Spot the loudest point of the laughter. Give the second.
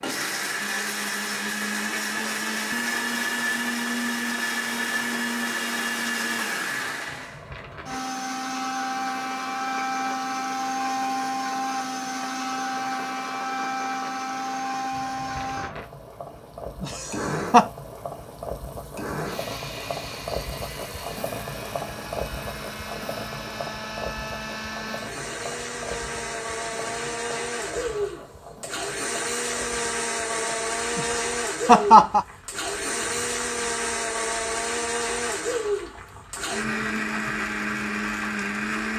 32 s.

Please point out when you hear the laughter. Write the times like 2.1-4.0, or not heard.
16.8-17.6, 30.9-32.2.